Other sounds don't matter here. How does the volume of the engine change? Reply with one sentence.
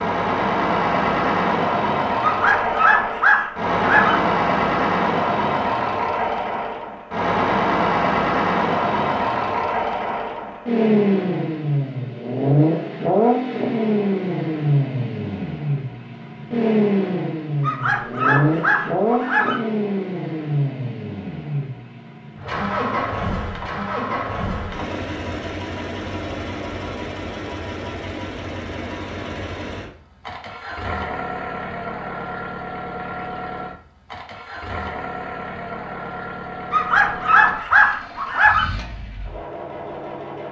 The loudness of the engine goes down.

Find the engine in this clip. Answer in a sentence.
The engine can be heard from 0.0 to 40.4 s.